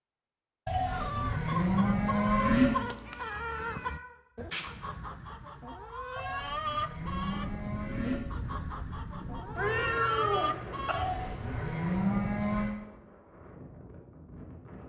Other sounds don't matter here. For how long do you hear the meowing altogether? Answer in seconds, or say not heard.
3 s.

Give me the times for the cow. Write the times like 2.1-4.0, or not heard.
0.7-2.7, 6.2-8.2, 10.9-12.7.